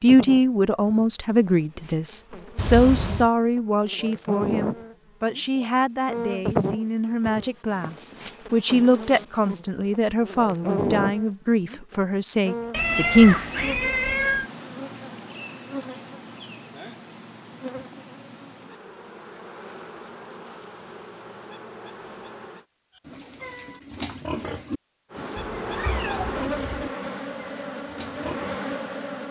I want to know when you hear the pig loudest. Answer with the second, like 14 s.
24 s.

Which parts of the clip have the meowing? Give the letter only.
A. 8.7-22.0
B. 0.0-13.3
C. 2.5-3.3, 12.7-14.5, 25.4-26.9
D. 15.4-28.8
C.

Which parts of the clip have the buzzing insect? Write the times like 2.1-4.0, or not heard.
0.0-22.6, 25.1-29.2.